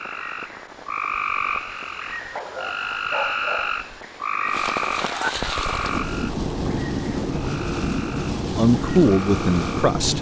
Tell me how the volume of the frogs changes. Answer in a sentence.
The loudness of the frogs goes down.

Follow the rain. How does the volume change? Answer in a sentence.
The volume of the rain goes up.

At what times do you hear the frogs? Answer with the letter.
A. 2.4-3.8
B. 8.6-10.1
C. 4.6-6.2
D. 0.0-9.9
D.